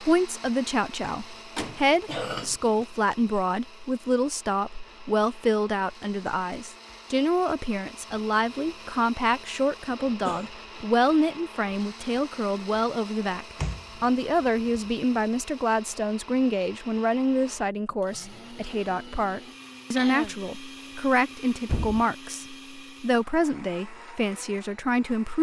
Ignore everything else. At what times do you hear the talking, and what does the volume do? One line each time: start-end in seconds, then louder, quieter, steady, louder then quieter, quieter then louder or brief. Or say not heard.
0.0-25.3 steady.